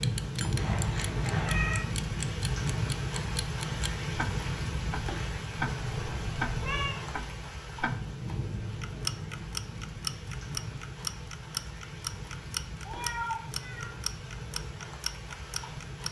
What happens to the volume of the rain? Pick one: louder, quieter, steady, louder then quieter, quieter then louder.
quieter.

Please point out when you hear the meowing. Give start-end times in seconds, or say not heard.
0.6-1.9, 5.8-7.0, 12.8-13.9.